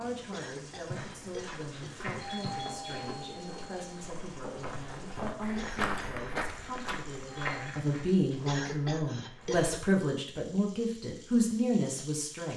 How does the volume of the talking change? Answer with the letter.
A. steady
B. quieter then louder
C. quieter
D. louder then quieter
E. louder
E.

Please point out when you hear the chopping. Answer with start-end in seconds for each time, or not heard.
not heard.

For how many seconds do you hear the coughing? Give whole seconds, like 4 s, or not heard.
4 s.